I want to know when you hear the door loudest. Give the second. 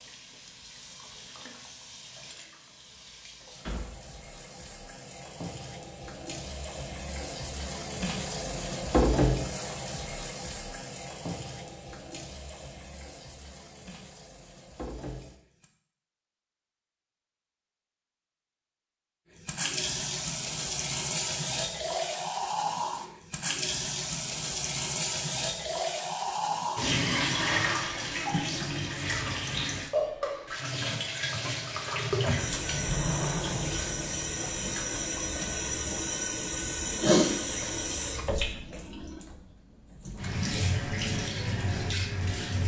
33 s.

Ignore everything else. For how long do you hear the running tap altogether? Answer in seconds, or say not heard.
39 s.